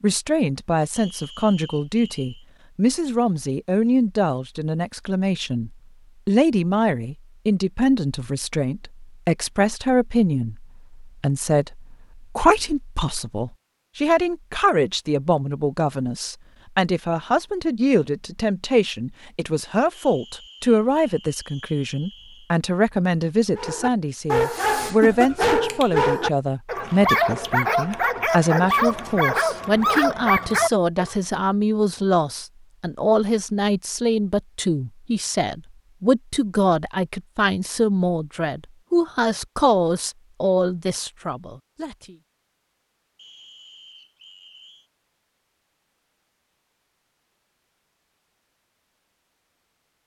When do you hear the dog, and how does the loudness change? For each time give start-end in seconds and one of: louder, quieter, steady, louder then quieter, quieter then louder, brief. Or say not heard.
23.6-31.1 steady.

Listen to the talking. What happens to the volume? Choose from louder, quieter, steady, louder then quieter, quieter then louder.
steady.